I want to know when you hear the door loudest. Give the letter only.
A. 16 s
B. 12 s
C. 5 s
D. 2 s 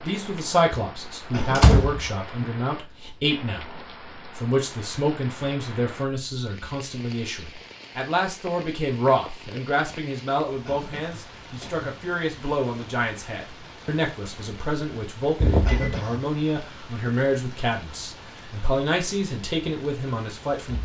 D.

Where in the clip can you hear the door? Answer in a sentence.
The door can be heard from 1.6 to 2.5 s and from 15.4 to 15.8 s.